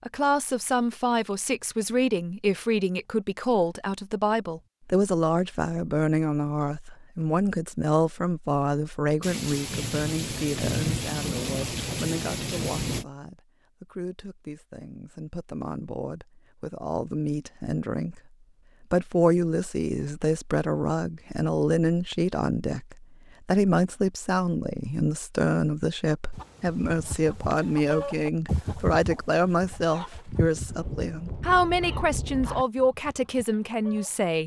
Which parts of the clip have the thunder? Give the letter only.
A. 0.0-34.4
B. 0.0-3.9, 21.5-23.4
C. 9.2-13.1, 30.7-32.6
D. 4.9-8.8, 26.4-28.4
C.